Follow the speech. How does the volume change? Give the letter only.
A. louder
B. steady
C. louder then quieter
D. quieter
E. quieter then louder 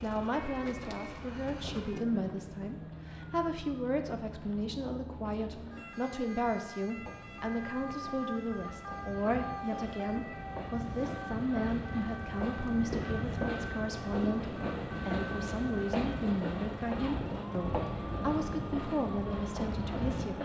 B.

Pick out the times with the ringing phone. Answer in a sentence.
The ringing phone can't be heard in this clip.